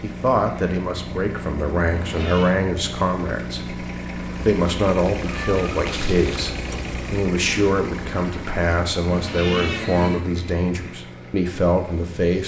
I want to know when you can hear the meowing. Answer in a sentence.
The meowing can be heard from 1.9 to 2.5 s, from 5.2 to 6.5 s and from 9.1 to 10.2 s.